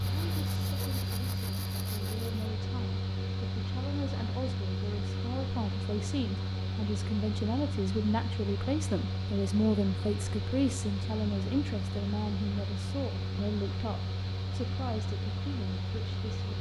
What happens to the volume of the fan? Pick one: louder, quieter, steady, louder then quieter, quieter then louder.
steady.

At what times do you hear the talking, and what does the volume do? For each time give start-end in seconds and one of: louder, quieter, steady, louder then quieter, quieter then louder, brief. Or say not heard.
0.0-16.5 louder then quieter.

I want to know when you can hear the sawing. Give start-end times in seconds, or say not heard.
0.0-2.4.